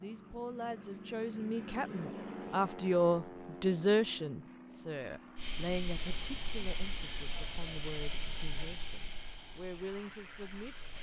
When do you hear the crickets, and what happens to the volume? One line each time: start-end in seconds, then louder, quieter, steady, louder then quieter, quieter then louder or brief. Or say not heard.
5.3-10.9 quieter.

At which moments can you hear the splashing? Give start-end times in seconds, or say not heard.
not heard.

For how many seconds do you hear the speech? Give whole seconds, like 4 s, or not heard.
11 s.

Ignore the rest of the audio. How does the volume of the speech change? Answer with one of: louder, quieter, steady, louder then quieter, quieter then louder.
louder then quieter.